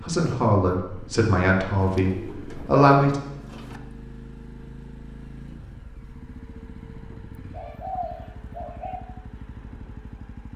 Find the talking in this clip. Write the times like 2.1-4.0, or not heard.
0.1-3.1.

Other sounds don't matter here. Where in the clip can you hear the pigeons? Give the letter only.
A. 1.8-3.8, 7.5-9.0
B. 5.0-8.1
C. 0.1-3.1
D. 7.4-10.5
A.